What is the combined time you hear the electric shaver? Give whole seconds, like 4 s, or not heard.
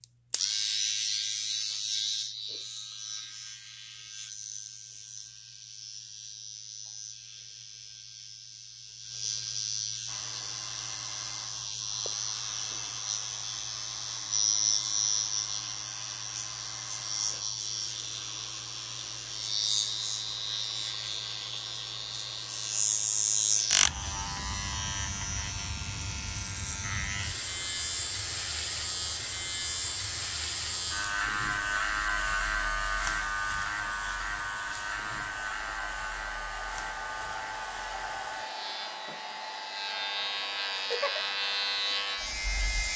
43 s.